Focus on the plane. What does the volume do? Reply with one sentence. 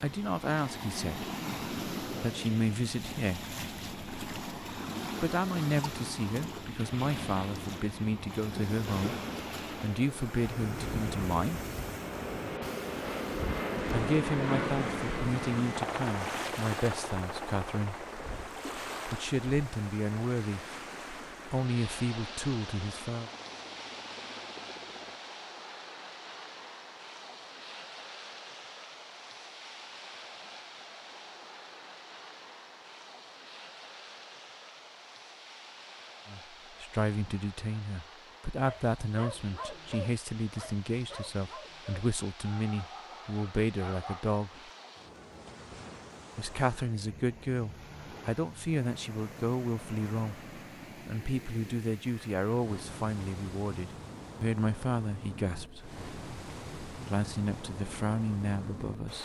The loudness of the plane goes up, then down.